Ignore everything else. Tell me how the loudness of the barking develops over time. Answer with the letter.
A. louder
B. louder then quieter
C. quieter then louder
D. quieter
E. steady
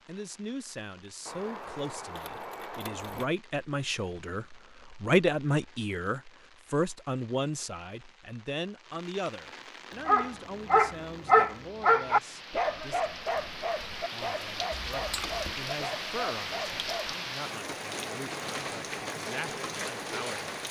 D.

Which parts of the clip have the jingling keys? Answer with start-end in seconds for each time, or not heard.
1.2-3.2, 14.7-15.6.